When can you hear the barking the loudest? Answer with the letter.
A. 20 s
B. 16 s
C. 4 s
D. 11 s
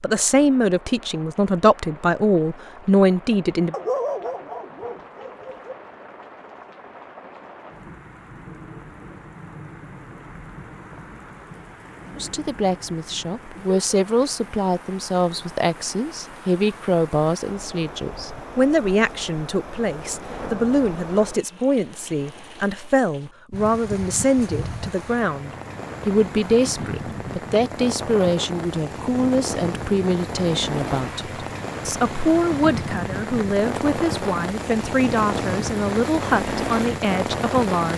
C.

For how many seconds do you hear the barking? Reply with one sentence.
You can hear the barking for 2 seconds altogether.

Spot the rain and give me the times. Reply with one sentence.
The rain can be heard from 0.0 to 37.9 s.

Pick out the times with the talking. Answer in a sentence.
The talking can be heard from 0.0 to 3.8 s and from 12.2 to 37.9 s.